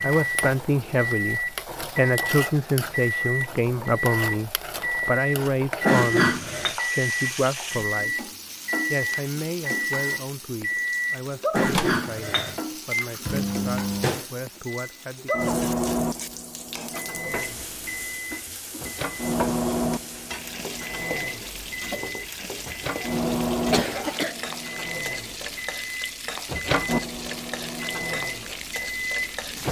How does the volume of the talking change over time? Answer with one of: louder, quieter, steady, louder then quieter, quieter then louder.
quieter.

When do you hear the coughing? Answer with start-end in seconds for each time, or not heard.
5.8-6.8, 11.5-12.6, 23.7-24.4.